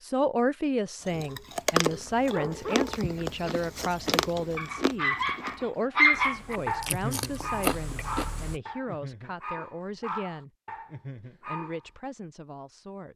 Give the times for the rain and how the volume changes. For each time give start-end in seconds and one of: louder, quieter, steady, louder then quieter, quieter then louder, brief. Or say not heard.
not heard.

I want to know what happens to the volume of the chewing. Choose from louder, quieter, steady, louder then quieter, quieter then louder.
quieter then louder.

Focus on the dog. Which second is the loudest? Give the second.
6 s.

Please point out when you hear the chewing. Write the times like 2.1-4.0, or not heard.
1.1-8.6.